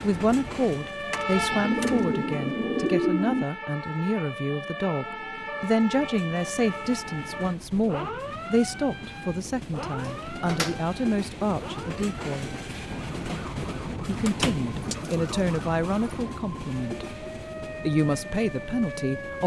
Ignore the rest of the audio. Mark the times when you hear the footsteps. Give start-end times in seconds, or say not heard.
not heard.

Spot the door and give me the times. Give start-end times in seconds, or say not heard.
1.1-2.1, 9.8-10.8, 14.2-14.7.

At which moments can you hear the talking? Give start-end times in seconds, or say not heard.
0.0-12.6, 14.1-17.1, 17.9-19.4.